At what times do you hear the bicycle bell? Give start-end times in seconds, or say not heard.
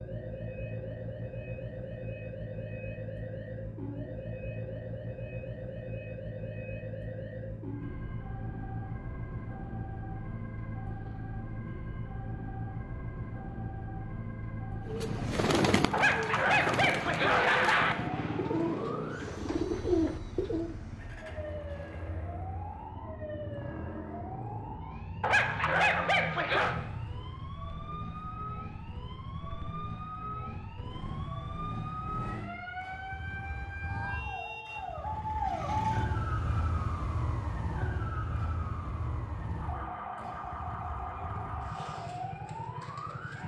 not heard.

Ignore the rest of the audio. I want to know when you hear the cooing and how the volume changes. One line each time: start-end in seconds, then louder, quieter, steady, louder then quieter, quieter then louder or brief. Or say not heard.
14.8-20.8 quieter then louder.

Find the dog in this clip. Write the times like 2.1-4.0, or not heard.
15.9-17.9, 25.2-26.8.